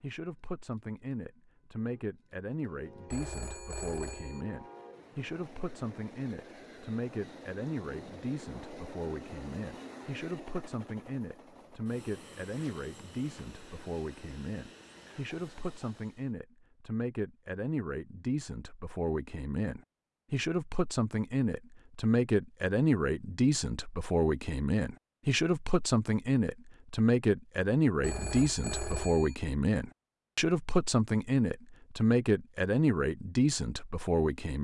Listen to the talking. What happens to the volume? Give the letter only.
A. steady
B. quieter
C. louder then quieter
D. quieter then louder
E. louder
E.